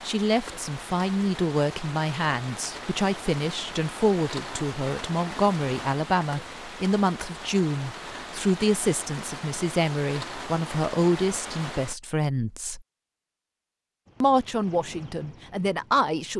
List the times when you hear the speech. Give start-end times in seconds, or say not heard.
0.0-12.8, 14.2-16.3.